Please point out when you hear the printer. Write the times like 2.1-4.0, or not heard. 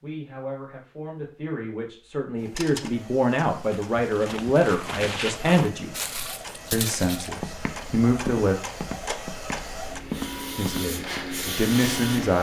2.4-12.3.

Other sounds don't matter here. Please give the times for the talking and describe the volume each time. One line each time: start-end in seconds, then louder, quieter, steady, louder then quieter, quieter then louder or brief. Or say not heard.
0.0-6.0 louder
6.7-8.6 brief
10.6-12.3 brief.